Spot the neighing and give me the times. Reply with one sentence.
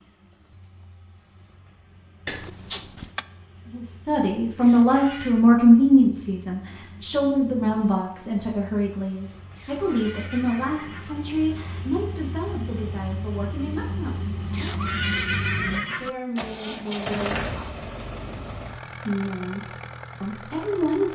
The neighing can be heard from 4.6 to 5.5 s, from 9.6 to 11.2 s and from 14.5 to 16.1 s.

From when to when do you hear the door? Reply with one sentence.
You can hear the door from 2.2 to 3.2 s.